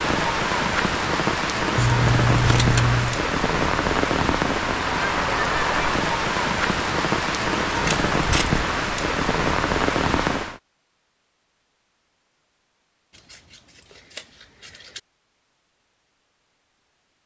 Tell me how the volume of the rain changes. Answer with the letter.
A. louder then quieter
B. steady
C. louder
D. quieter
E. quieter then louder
B.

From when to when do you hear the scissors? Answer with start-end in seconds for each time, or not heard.
1.8-3.2, 7.7-8.6, 13.1-15.0.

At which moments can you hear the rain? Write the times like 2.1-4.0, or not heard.
0.0-10.6.